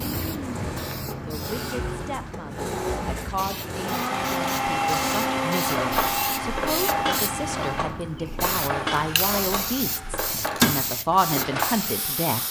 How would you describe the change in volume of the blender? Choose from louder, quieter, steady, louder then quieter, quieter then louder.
louder then quieter.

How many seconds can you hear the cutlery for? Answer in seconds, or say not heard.
6 s.